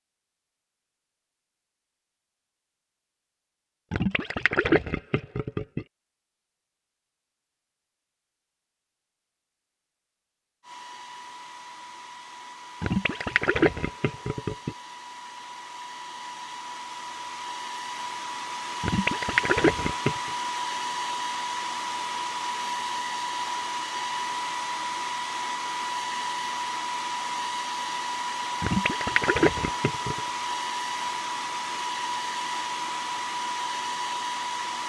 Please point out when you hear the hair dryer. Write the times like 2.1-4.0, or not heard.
10.6-34.8.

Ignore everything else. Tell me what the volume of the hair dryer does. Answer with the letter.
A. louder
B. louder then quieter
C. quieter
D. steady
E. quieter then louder
A.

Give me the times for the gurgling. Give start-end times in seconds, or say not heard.
3.9-5.8, 12.8-14.8, 18.8-20.3, 28.6-30.2.